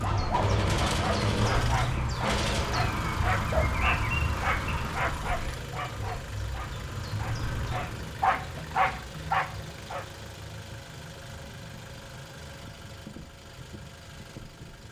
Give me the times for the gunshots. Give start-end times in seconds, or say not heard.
0.1-2.9.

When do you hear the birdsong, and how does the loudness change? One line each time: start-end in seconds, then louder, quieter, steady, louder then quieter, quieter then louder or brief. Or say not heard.
0.0-8.1 quieter.